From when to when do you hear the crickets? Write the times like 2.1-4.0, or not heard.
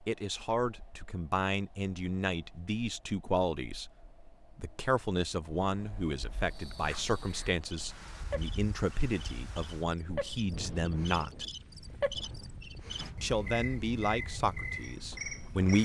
6.4-15.7.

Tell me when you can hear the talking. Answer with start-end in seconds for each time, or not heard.
0.1-3.9, 4.5-11.4, 13.2-15.7.